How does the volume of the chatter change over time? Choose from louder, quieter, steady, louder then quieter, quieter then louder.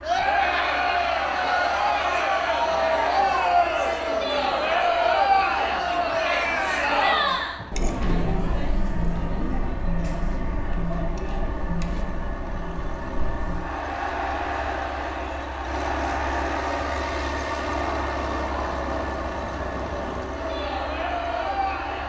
quieter.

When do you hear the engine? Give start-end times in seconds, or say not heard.
0.0-22.0.